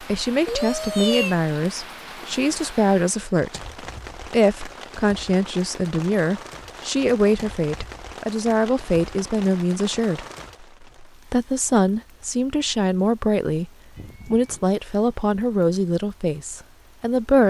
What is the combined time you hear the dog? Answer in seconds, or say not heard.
not heard.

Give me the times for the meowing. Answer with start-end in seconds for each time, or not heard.
0.5-1.4, 13.9-14.7.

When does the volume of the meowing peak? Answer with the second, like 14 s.
1 s.